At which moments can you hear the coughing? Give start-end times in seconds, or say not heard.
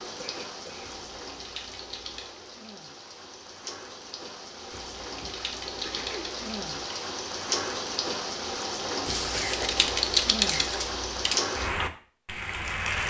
0.0-0.9, 5.2-6.3, 9.3-10.8.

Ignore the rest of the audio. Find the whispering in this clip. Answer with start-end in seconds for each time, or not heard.
not heard.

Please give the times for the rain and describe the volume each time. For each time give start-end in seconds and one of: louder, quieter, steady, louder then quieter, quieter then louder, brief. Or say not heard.
0.0-13.0 louder.